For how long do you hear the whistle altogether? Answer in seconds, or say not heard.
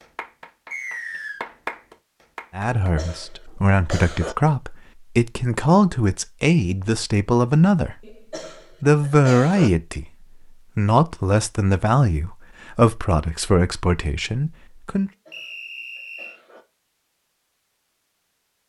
2 s.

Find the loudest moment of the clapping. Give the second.
2 s.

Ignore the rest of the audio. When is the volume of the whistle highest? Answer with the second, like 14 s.
1 s.